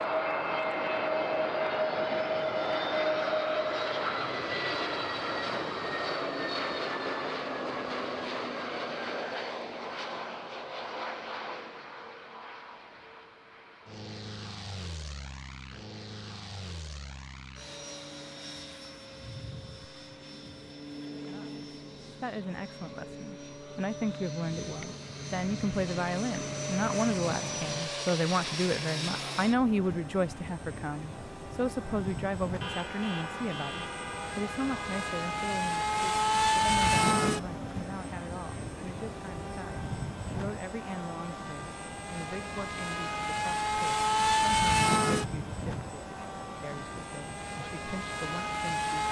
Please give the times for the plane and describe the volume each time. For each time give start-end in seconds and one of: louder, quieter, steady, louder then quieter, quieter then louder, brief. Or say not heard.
0.0-49.0 quieter then louder.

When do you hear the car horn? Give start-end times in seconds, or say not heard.
32.6-35.0.